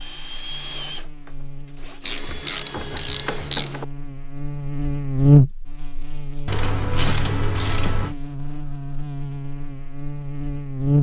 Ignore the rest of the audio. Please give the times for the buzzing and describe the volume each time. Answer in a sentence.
You can hear the buzzing from 0.0 to 10.9 s, getting louder then quieter.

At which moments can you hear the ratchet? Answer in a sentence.
You can hear the ratchet from 2.0 to 3.9 s and from 6.5 to 8.2 s.